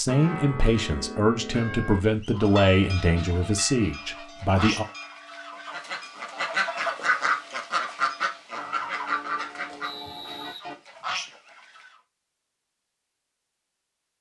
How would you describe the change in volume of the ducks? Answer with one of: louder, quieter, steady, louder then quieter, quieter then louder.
louder then quieter.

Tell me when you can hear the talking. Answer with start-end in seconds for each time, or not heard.
0.0-4.8.